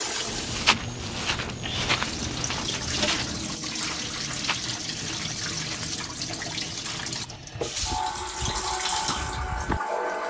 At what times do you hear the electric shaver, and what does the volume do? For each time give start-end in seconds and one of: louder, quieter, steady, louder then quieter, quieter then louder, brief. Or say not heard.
not heard.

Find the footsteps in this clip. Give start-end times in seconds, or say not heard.
0.2-9.8.